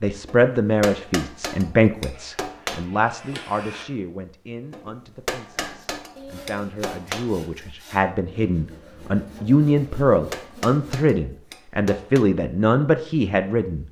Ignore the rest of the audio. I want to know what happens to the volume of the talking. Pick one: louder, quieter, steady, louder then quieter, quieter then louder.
quieter then louder.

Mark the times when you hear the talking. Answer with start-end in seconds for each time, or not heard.
0.0-13.8.